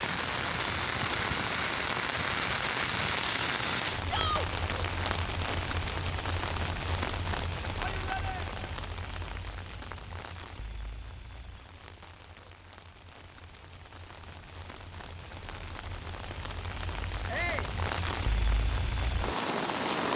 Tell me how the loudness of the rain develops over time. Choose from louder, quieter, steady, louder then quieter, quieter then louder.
quieter then louder.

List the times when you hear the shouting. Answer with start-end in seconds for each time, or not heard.
4.0-4.5, 7.8-8.6, 17.2-17.8.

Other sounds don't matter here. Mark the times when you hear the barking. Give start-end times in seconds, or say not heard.
not heard.